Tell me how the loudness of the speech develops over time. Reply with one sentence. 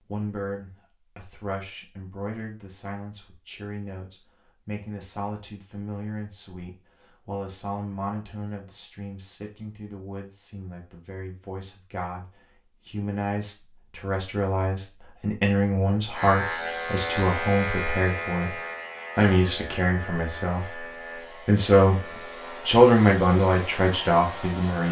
The loudness of the speech goes up.